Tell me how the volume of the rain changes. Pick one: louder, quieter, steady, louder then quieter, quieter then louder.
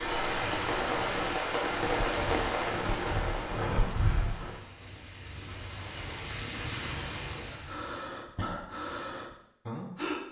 quieter then louder.